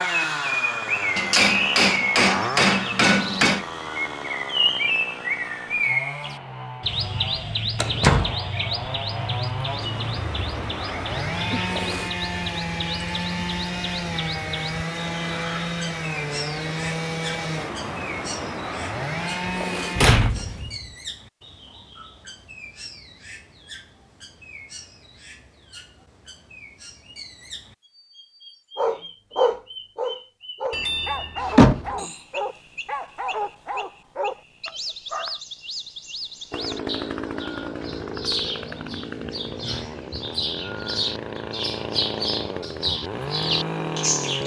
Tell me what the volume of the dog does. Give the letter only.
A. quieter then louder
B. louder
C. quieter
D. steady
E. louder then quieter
C.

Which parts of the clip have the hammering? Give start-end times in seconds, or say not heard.
1.1-3.6.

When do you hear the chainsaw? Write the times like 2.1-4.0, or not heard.
0.0-20.1, 36.5-44.4.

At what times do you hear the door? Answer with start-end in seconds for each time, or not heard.
7.8-8.3, 19.4-20.8, 30.7-31.9.